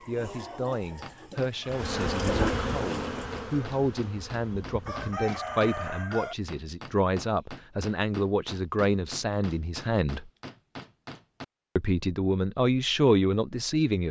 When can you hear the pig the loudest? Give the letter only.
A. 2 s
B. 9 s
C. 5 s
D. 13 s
A.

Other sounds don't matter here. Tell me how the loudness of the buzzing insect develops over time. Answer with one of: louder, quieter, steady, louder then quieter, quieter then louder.
quieter.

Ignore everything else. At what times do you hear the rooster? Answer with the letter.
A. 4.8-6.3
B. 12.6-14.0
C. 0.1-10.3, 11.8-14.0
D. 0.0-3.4
A.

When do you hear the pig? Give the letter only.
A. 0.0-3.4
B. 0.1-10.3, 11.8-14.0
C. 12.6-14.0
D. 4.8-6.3
A.